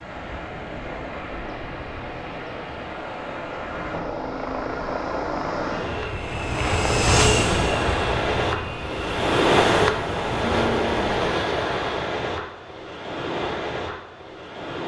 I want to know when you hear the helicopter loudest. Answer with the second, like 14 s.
7 s.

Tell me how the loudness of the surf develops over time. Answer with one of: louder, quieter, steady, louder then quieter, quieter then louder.
louder then quieter.